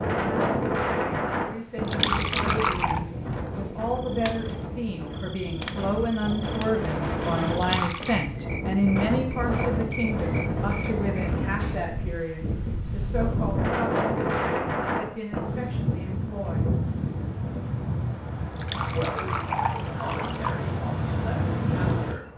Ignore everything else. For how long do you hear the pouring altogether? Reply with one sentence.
You can hear the pouring for 4 seconds altogether.